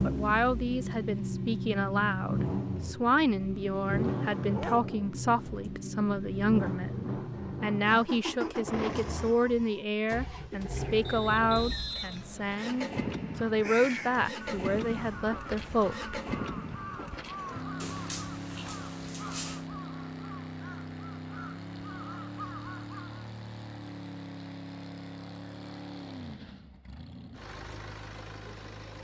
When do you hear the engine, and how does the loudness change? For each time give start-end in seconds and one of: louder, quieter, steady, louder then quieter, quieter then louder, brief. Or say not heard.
0.0-28.9 quieter.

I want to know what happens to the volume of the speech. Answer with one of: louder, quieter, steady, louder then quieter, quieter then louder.
steady.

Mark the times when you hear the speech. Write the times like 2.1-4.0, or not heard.
0.0-16.2.